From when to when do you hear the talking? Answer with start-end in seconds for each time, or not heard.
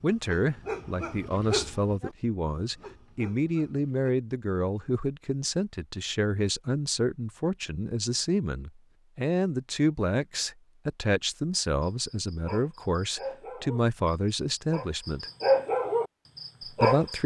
0.0-15.3, 16.6-17.2.